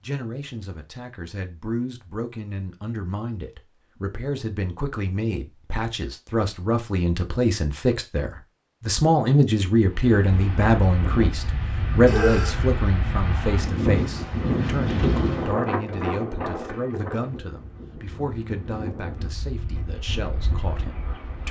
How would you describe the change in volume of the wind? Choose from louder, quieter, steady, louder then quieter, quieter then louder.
louder then quieter.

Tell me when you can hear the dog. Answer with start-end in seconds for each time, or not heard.
12.1-12.5.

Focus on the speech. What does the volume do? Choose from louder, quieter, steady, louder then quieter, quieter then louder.
louder then quieter.